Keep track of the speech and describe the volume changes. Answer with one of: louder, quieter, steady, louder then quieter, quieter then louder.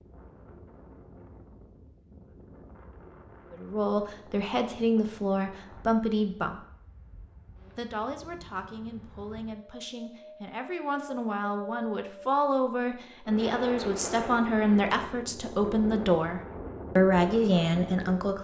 quieter then louder.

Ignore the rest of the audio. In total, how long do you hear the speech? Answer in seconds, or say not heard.
14 s.